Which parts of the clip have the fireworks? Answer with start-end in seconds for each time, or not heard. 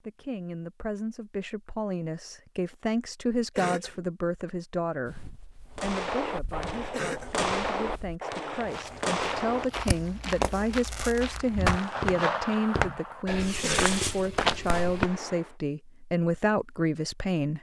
5.8-15.5.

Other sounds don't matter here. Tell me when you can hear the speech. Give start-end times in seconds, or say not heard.
0.0-17.5.